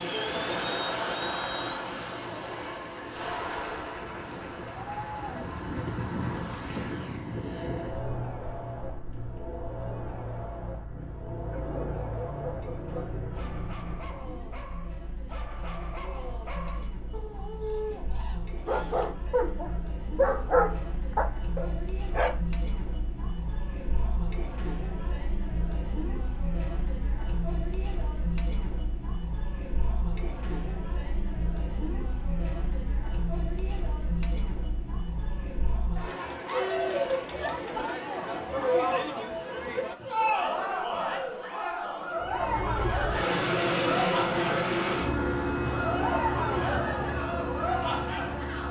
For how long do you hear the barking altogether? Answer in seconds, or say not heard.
11 s.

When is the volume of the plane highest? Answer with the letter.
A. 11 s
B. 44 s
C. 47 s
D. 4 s
B.